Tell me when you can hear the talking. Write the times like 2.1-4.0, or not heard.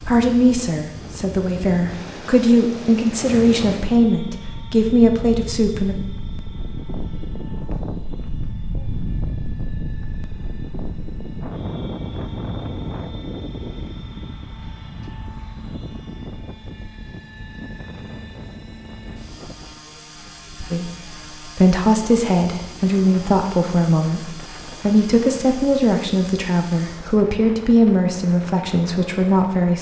0.1-6.0, 20.7-29.7.